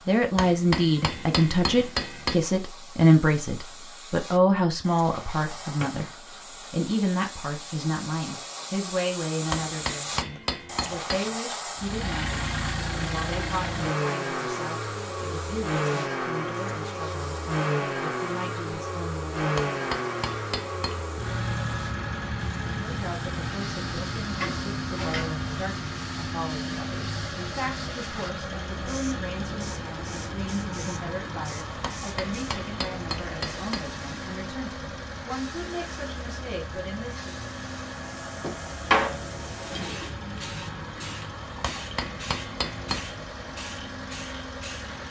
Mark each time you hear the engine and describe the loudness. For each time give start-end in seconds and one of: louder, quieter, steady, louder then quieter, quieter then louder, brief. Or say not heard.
11.8-45.0 quieter.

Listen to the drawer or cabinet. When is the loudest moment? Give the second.
39 s.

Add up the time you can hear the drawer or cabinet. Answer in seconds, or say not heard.
3 s.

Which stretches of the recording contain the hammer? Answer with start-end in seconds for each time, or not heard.
0.3-2.4, 9.5-11.3, 19.6-21.1, 31.8-33.9, 41.6-43.1.